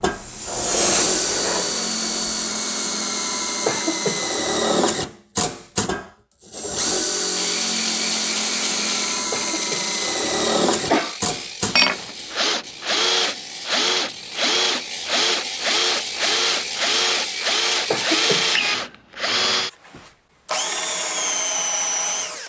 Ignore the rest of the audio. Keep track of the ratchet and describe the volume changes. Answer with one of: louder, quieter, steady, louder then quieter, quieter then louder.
quieter then louder.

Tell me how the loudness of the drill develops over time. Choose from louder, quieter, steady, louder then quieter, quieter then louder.
steady.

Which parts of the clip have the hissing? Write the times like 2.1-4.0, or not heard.
0.0-2.4.